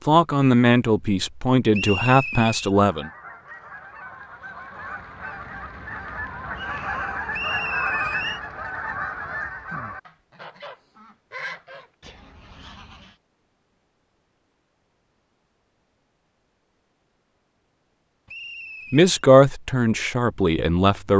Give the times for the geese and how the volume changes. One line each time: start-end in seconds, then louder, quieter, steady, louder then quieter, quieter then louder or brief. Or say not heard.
2.7-13.2 louder then quieter.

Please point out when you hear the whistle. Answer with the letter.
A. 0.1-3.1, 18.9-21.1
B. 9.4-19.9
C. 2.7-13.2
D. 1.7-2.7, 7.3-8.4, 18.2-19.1
D.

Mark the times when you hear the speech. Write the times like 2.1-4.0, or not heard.
0.1-3.1, 18.9-21.1.